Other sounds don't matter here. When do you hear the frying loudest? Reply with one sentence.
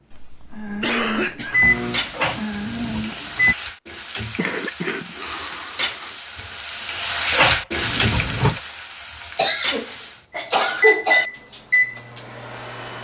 The loudest moment of the frying is at 8 seconds.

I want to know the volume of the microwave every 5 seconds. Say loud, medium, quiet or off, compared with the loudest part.
loud, off, loud.